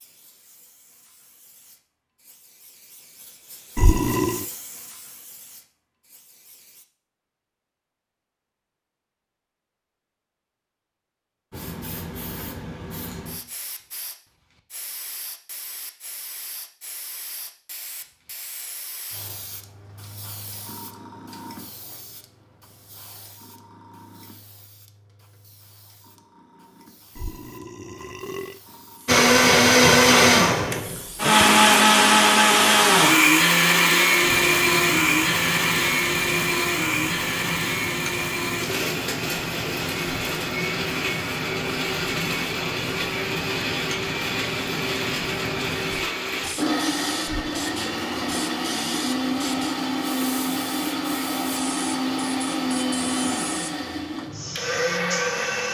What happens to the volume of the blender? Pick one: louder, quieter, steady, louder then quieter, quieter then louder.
quieter.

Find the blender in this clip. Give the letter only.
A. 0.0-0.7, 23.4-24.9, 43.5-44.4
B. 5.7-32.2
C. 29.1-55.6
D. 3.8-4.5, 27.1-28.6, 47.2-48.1
C.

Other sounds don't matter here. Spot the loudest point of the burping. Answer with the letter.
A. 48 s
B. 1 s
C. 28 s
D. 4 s
D.